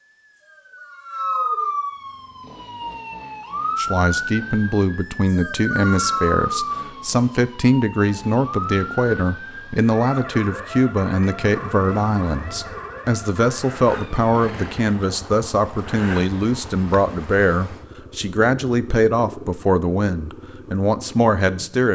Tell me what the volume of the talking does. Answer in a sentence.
The volume of the talking stays about the same.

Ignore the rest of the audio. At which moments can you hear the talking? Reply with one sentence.
You can hear the talking from 3.8 to 21.9 s.